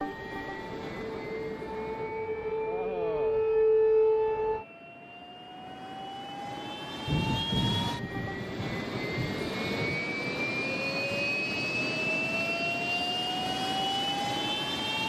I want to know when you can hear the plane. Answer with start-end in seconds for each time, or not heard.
0.0-15.0.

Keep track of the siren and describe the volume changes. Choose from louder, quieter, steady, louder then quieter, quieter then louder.
louder.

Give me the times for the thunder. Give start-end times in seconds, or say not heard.
7.0-10.1.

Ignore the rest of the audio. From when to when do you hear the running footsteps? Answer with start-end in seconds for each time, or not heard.
not heard.